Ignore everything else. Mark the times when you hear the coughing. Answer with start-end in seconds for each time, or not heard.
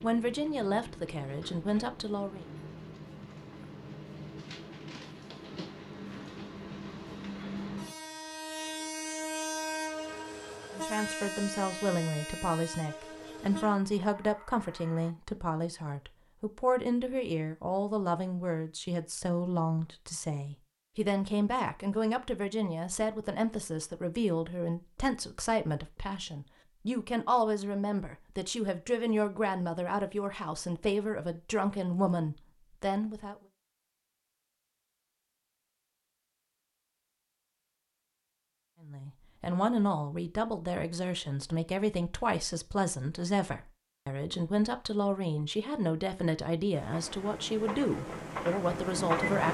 not heard.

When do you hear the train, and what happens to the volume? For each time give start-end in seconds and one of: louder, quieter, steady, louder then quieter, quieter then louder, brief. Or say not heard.
0.0-15.2 louder then quieter
46.7-49.5 brief.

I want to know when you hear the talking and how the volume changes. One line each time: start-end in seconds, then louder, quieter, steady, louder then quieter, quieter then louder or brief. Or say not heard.
0.0-2.5 brief
10.7-33.4 steady
38.9-49.5 steady.